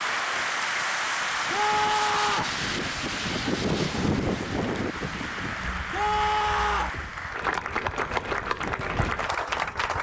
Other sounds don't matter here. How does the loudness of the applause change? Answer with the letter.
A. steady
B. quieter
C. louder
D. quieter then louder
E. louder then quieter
D.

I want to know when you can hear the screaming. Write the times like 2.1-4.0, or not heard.
1.5-2.5, 5.9-7.0.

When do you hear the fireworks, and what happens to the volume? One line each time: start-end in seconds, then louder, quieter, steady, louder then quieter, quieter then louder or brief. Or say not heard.
not heard.